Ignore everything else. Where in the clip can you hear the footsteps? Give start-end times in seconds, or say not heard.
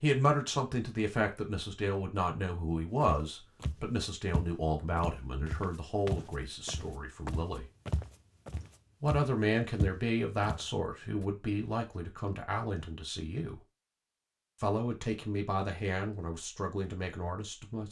3.0-11.2.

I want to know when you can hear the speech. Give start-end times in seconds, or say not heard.
0.0-7.7, 9.0-13.6, 14.6-17.8.